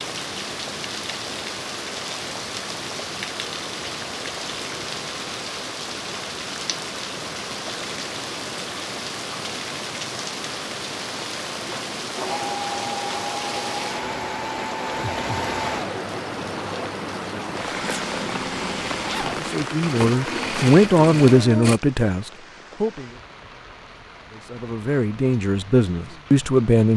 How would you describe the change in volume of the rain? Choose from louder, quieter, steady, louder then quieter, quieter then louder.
quieter.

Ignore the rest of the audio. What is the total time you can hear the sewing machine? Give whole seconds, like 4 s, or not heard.
10 s.